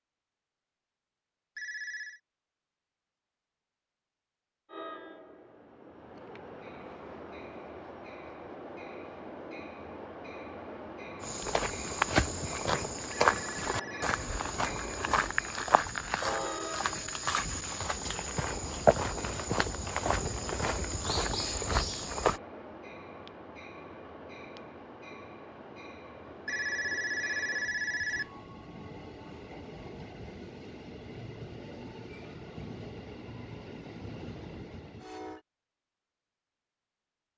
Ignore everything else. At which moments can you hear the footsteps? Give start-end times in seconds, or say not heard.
11.2-22.4.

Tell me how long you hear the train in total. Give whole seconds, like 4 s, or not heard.
31 s.